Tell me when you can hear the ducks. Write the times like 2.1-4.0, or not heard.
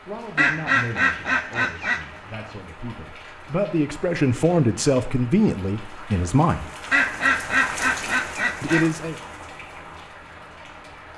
0.3-2.0, 6.9-8.9.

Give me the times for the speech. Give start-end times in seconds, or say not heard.
0.1-6.7, 8.6-9.2.